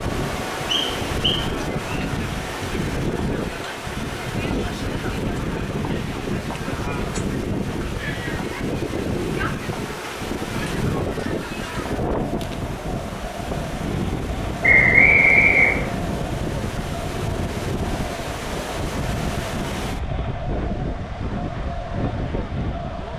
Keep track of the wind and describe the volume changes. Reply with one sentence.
The volume of the wind stays about the same.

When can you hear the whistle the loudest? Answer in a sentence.
The loudest moment of the whistle is at 15 seconds.